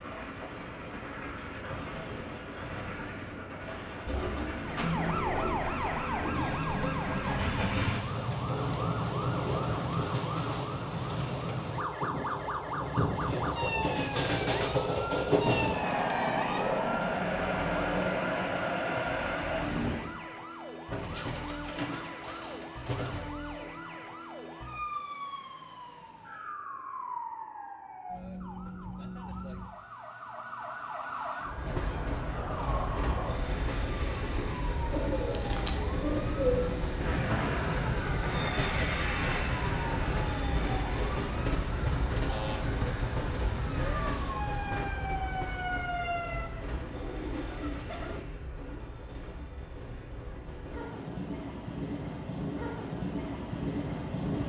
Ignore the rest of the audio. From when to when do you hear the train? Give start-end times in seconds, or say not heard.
0.0-20.1, 31.4-54.4.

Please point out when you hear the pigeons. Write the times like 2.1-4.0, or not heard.
4.0-6.7, 20.9-23.2, 34.9-36.8, 46.7-48.2.